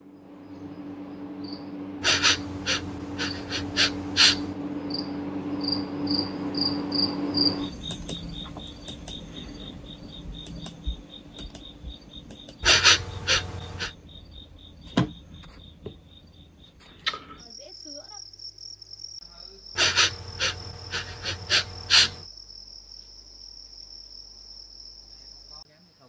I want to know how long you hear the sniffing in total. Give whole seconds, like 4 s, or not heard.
6 s.